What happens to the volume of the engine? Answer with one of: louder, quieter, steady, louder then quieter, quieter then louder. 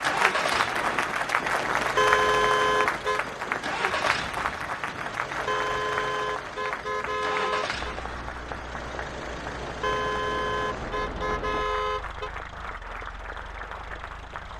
quieter.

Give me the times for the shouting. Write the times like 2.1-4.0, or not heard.
not heard.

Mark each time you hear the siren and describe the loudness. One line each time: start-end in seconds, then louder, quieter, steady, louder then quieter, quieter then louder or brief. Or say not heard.
not heard.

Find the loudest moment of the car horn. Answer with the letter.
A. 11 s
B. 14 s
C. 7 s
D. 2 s
D.